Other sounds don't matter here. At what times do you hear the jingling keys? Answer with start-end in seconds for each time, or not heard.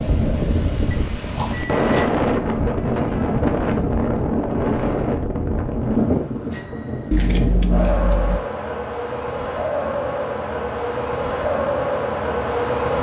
0.9-2.0, 7.1-8.4.